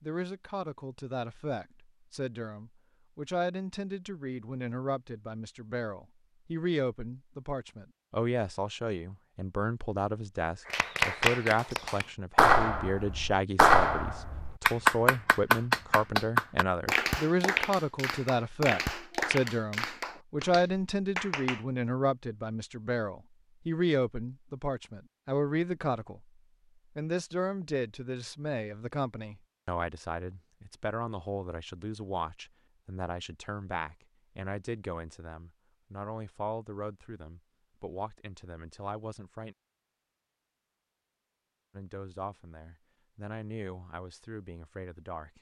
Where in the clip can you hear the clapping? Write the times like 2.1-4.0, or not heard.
10.7-21.6.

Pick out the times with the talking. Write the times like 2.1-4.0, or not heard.
0.0-26.2, 26.9-39.5, 41.8-45.3.